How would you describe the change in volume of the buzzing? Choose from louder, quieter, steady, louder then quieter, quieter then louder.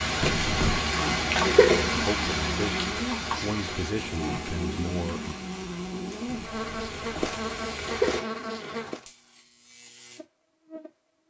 quieter.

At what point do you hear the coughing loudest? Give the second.
2 s.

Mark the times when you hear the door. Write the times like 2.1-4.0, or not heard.
0.2-0.8, 6.2-7.4.